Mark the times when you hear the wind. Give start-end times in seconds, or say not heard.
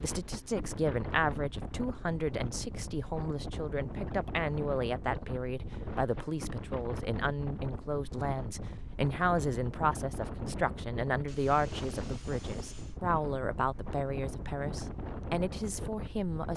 0.0-16.5.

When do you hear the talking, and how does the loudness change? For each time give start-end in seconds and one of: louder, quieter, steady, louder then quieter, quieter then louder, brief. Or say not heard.
0.0-16.5 steady.